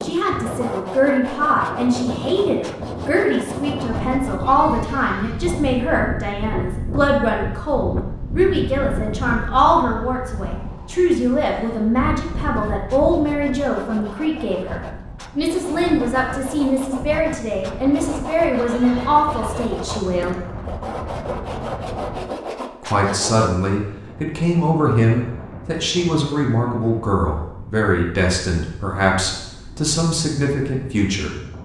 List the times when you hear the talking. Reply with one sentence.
You can hear the talking from 0.0 to 20.4 s and from 22.8 to 31.4 s.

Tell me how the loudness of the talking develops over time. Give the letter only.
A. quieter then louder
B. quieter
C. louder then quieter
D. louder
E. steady
E.